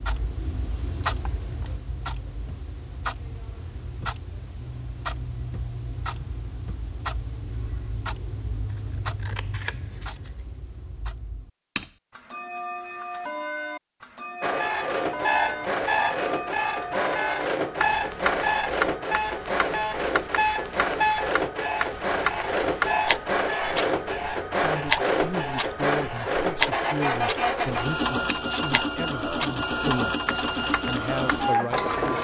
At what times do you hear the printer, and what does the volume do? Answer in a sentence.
The printer can be heard from 14.4 to 32.1 s, at a steady volume.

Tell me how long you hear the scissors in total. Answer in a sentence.
You can hear the scissors for 2 seconds altogether.